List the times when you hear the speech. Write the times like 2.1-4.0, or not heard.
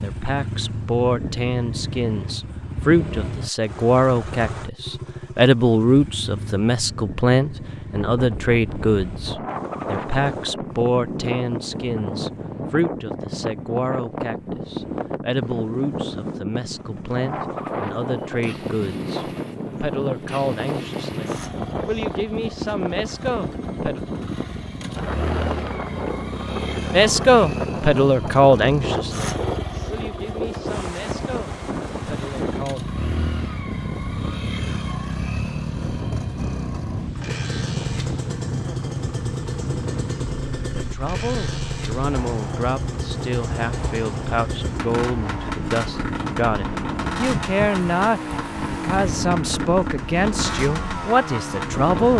0.0-24.0, 26.9-32.9, 40.8-52.1.